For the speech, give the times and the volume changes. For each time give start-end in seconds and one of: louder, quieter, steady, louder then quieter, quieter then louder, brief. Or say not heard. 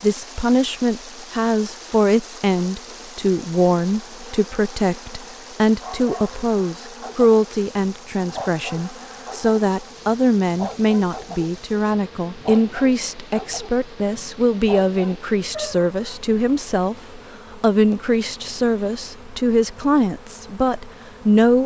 0.0-21.6 steady.